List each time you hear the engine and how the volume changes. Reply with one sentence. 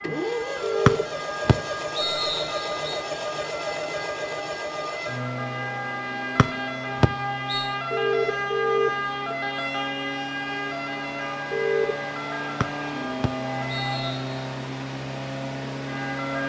You can hear the engine from 0.0 to 16.4 s, getting quieter then louder.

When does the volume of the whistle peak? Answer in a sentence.
The volume of the whistle peaks at 1 second.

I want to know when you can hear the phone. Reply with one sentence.
The phone can be heard from 0.6 to 1.1 s, from 7.9 to 9.3 s and from 11.5 to 11.9 s.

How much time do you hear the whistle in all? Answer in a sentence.
You can hear the whistle for 5 seconds altogether.